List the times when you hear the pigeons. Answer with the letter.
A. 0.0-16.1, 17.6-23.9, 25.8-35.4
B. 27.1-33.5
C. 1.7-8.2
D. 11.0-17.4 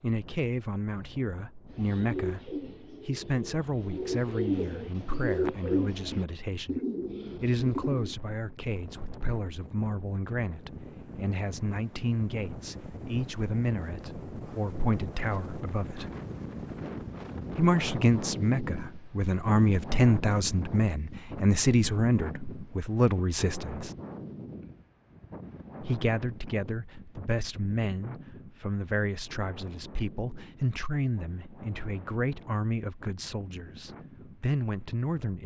C.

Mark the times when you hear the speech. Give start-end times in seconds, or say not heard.
0.0-16.1, 17.6-23.9, 25.8-35.4.